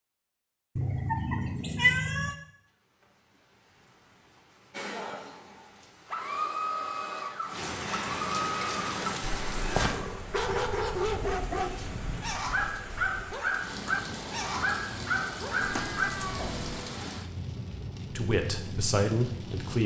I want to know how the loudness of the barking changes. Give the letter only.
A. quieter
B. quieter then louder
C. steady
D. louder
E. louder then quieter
C.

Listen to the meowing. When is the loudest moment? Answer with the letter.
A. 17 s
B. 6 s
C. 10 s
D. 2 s
D.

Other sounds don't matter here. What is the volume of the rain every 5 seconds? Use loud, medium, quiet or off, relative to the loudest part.
quiet, loud, loud, loud.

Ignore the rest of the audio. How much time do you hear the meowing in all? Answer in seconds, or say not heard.
3 s.